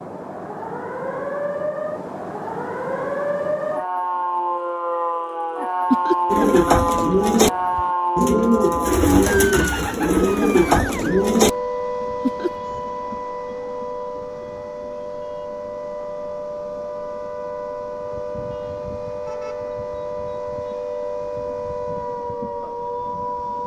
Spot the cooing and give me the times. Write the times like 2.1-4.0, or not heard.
6.2-11.6.